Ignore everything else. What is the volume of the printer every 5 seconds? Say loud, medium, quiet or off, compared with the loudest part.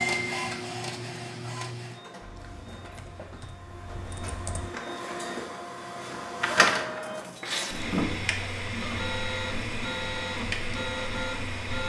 medium, loud, loud.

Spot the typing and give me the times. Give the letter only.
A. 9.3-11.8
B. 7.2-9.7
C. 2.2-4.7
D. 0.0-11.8
C.